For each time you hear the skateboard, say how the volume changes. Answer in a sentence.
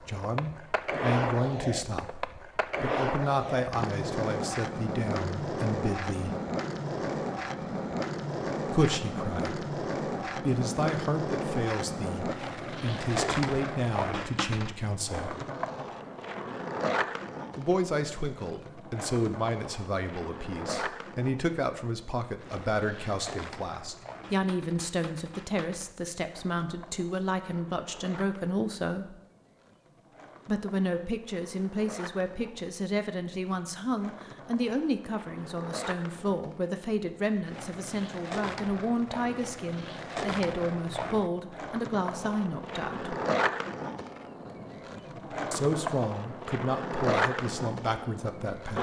You can hear the skateboard from 0.0 to 48.7 s, getting quieter then louder.